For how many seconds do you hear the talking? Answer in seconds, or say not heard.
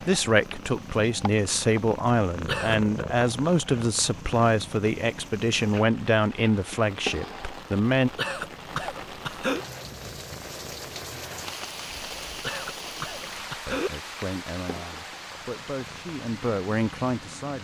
12 s.